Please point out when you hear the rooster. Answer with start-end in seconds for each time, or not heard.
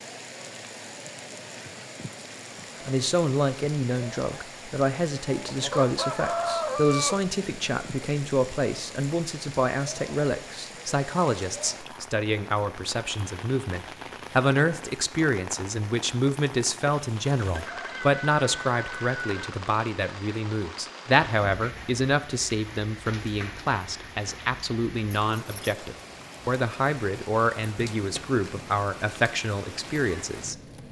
5.5-7.2, 17.5-19.4.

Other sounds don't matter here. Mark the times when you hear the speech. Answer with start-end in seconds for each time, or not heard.
2.9-30.6.